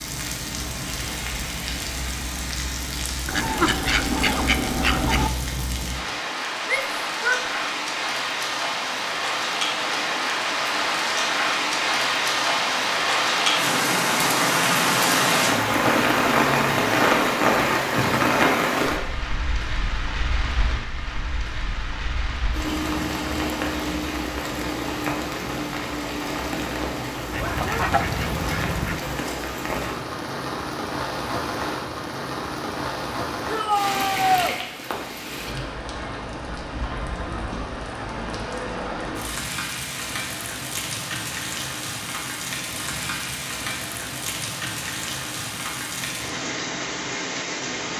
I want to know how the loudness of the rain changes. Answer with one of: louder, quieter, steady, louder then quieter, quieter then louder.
louder then quieter.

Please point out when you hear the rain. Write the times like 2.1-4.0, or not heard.
0.0-47.9.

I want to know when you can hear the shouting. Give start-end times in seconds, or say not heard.
6.7-7.5, 33.5-34.5.